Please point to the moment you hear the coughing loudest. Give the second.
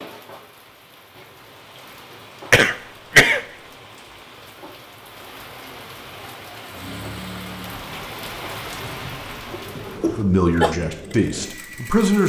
3 s.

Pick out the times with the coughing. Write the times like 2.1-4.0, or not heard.
2.5-3.5, 9.5-10.8.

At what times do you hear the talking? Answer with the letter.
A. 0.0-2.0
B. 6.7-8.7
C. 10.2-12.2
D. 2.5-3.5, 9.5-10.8
C.